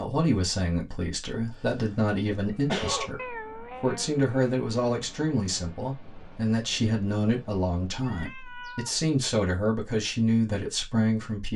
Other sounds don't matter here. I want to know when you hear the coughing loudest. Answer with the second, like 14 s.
3 s.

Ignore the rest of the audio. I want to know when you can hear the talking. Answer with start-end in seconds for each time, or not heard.
0.0-11.5.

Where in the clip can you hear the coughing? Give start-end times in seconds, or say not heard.
1.5-3.1.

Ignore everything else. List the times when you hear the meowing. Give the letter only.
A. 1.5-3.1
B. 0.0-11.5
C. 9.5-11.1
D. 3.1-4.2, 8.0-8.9
D.